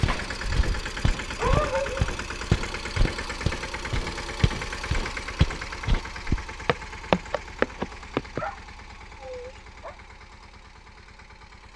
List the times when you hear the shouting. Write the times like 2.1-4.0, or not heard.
not heard.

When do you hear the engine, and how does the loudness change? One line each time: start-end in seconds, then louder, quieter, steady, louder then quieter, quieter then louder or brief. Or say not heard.
0.0-11.7 quieter.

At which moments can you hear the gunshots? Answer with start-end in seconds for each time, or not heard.
0.1-0.5.